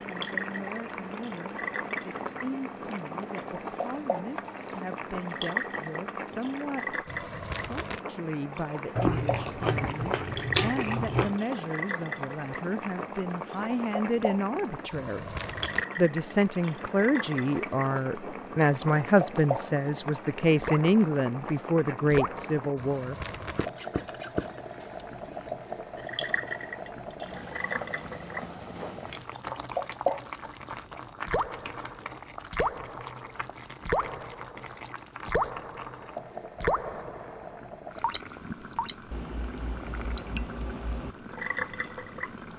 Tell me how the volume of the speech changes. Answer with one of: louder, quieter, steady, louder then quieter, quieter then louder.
louder.